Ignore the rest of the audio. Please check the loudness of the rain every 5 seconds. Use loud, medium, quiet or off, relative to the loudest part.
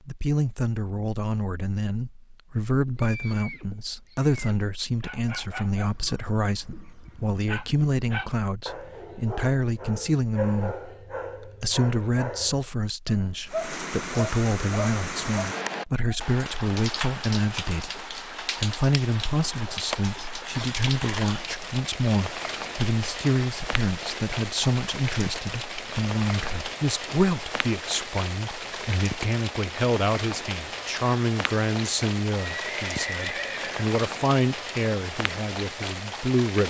off, off, loud, loud, loud, loud, loud, loud.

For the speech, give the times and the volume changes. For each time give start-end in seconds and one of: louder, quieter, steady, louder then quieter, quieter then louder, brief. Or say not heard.
0.1-36.6 steady.